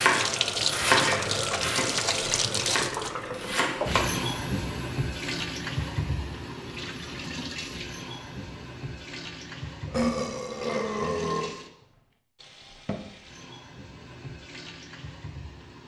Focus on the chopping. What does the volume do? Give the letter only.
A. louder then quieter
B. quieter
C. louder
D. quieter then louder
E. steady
B.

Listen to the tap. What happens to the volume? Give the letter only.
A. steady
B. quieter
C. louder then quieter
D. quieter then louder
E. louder
B.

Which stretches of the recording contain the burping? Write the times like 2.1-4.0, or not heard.
1.1-1.7, 9.8-11.5.